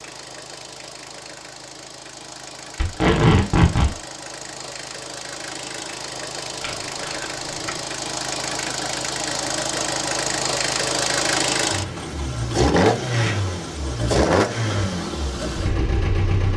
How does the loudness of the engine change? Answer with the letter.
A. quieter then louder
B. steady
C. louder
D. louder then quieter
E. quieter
C.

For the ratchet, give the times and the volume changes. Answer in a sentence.
The ratchet can't be heard in this clip.